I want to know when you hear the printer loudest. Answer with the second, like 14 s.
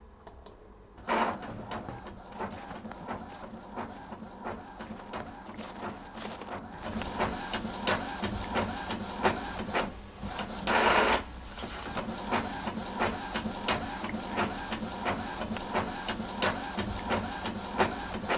11 s.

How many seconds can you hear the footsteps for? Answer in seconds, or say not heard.
6 s.